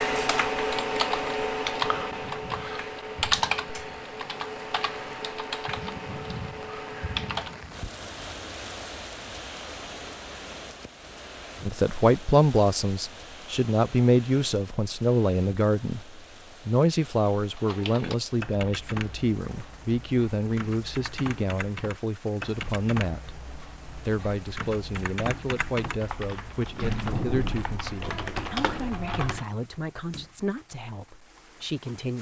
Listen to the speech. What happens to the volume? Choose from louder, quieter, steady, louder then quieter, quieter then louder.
quieter.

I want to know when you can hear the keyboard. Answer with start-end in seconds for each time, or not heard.
0.0-7.7, 17.6-29.4.